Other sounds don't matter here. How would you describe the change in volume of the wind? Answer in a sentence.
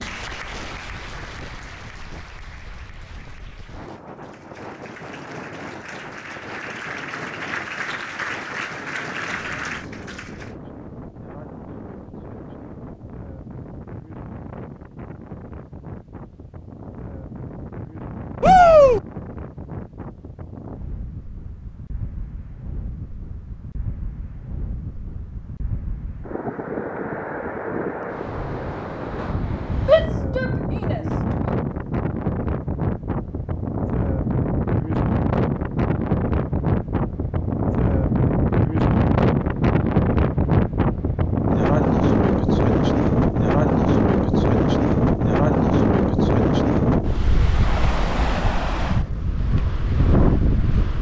The loudness of the wind goes up.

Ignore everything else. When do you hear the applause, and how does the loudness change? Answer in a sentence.
You can hear the applause from 0.0 to 10.6 s, getting quieter then louder.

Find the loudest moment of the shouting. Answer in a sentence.
The loudest moment of the shouting is at 19 seconds.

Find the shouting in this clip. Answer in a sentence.
You can hear the shouting from 18.4 to 19.0 s and from 29.9 to 31.0 s.